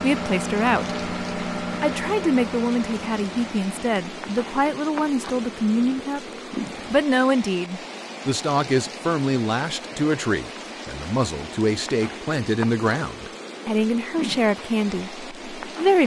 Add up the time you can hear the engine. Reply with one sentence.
The engine can be heard for 7 seconds in total.